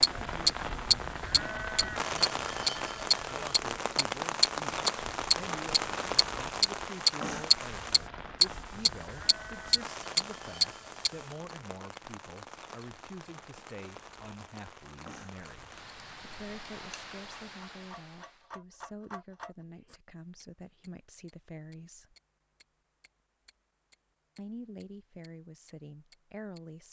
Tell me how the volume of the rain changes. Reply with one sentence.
The loudness of the rain goes down.